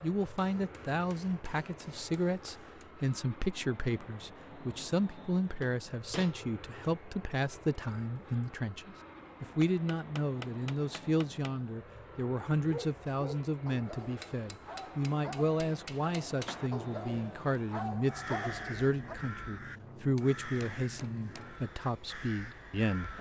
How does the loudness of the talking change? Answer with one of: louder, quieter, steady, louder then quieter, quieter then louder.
steady.